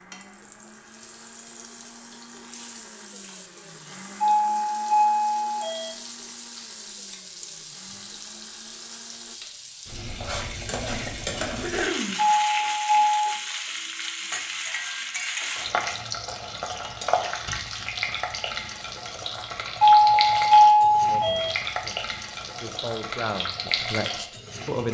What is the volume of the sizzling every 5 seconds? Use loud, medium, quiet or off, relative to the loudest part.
quiet, medium, loud, loud, loud.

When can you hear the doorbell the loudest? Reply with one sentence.
The loudest moment of the doorbell is at 21 seconds.